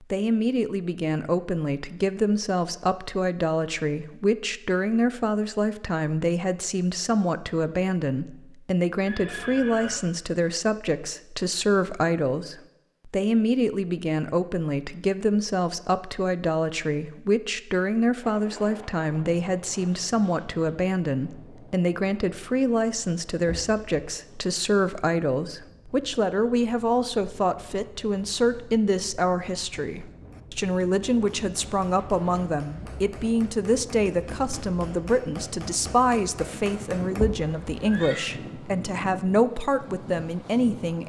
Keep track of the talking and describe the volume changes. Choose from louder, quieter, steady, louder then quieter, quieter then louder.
steady.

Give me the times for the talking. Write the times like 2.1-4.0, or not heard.
0.0-41.0.